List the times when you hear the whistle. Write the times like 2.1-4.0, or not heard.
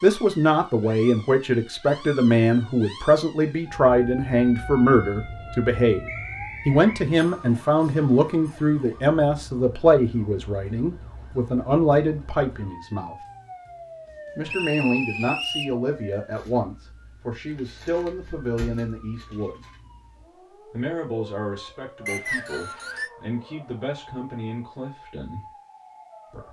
6.0-6.8, 14.4-15.8, 22.1-23.1.